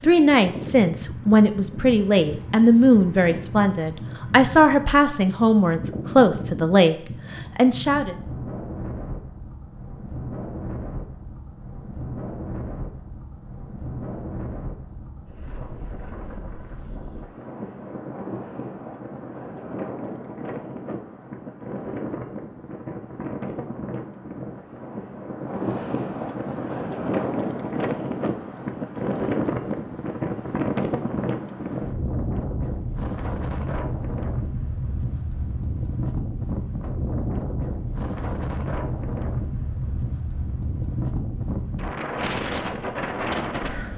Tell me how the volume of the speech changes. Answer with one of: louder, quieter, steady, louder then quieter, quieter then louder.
steady.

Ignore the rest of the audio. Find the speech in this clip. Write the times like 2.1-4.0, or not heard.
0.0-8.2.